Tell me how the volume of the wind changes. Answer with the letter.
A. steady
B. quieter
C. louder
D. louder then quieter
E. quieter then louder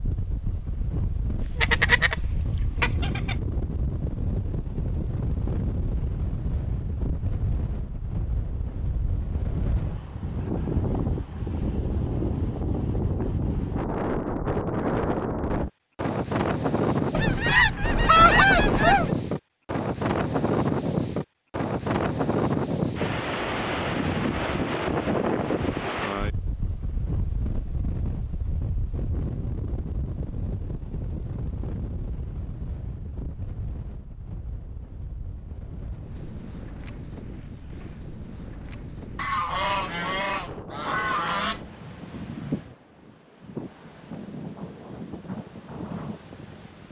D.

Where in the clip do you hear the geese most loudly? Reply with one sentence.
The loudest moment of the geese is at 18 seconds.